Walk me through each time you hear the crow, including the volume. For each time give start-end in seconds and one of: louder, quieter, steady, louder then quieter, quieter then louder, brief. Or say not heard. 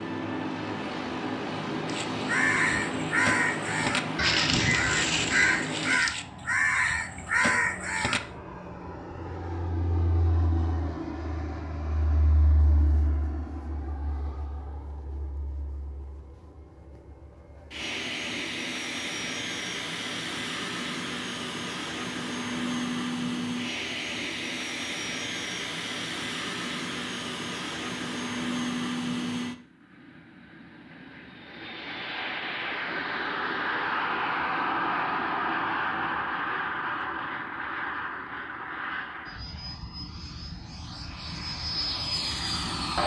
1.9-8.2 steady.